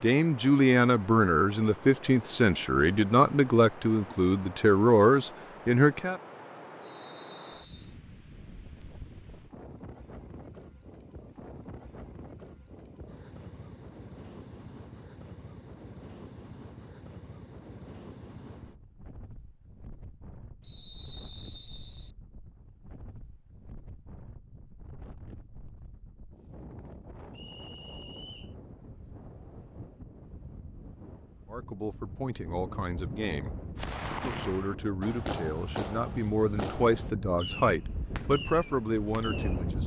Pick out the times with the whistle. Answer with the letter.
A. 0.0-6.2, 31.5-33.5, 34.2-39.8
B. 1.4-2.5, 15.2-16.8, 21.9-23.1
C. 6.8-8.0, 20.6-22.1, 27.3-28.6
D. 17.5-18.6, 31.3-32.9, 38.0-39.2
C.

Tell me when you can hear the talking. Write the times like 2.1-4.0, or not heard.
0.0-6.2, 31.5-33.5, 34.2-39.8.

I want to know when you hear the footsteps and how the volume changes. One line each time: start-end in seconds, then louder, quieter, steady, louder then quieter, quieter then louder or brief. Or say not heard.
not heard.